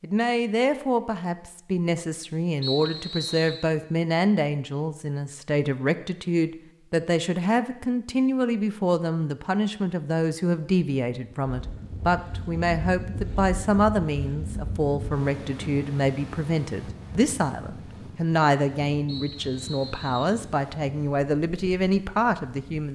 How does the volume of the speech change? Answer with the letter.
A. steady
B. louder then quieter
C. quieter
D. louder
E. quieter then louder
A.